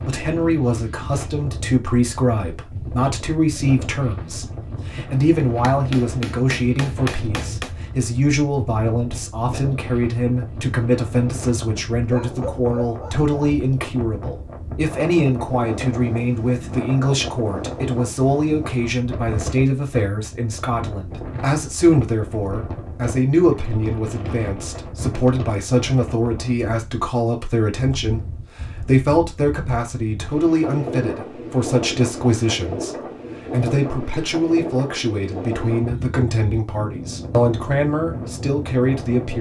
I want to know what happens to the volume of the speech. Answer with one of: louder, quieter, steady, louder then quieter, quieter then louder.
steady.